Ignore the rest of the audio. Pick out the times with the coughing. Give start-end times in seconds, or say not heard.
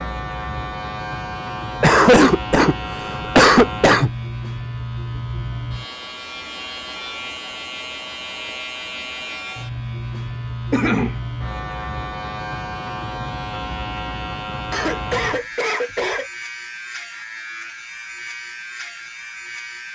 1.8-4.1, 10.7-11.2, 14.7-16.3.